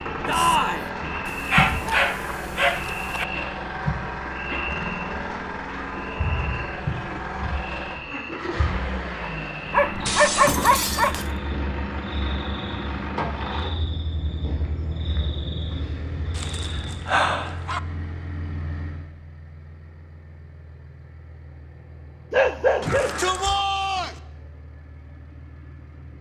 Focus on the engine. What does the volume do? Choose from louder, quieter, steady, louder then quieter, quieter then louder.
quieter.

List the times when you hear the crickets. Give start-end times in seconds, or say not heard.
0.0-17.1.